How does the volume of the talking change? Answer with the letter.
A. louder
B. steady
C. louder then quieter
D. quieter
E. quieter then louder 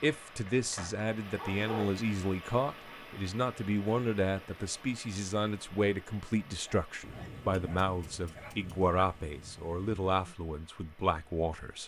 B.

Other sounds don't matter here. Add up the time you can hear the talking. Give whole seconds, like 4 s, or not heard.
12 s.